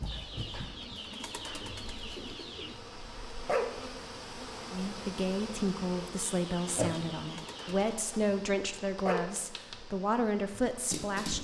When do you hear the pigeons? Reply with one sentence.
You can hear the pigeons from 0.1 to 2.8 s and from 6.2 to 8.0 s.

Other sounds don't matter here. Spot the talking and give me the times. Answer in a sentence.
The talking can be heard from 4.7 to 11.3 s.